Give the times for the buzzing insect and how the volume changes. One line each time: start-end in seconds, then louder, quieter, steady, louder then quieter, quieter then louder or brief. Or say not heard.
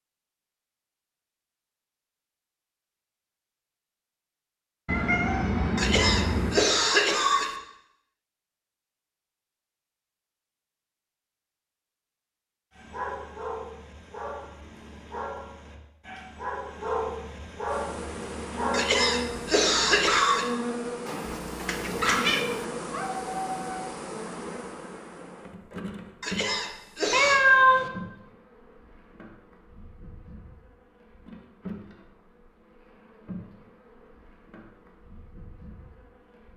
17.6-36.5 quieter.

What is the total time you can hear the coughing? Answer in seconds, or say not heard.
5 s.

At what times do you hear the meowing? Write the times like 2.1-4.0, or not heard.
4.8-6.7, 21.1-22.6, 27.1-27.9.